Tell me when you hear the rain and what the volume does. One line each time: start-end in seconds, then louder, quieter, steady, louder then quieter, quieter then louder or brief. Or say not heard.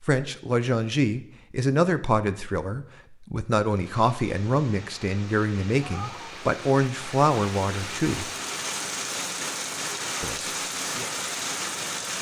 3.6-12.1 louder.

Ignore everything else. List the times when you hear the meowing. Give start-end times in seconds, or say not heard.
5.8-6.3.